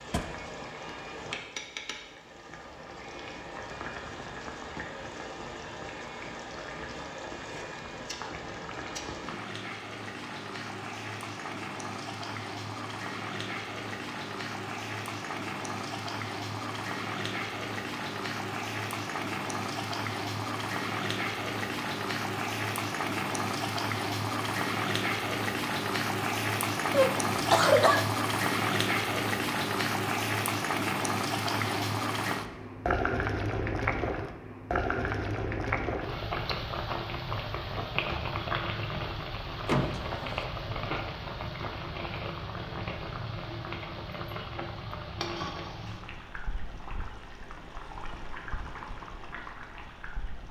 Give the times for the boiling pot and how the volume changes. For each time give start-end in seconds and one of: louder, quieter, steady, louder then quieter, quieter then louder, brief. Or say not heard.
0.0-50.4 louder then quieter.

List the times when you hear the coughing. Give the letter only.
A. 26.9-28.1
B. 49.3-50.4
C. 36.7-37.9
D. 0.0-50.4
A.